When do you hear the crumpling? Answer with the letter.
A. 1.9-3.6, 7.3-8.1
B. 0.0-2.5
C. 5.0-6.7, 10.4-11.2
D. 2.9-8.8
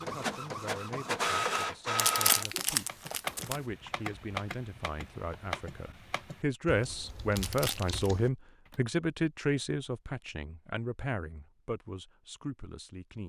A.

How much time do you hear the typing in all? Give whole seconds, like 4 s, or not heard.
6 s.